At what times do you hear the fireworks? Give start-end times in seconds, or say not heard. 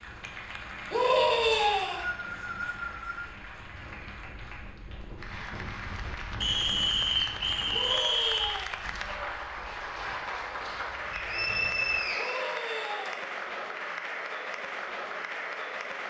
not heard.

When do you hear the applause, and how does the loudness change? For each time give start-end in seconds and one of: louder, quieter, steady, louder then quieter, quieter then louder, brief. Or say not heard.
0.0-16.0 louder.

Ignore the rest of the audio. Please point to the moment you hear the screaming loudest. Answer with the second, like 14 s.
1 s.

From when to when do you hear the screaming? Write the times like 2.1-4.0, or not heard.
0.9-2.0, 7.7-8.8, 12.2-13.3.